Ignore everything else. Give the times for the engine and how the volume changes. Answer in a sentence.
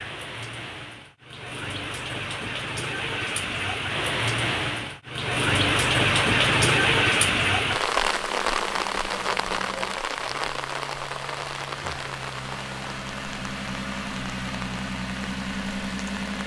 You can hear the engine from 8.1 to 16.4 s, getting louder.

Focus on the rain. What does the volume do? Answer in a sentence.
The volume of the rain goes up, then down.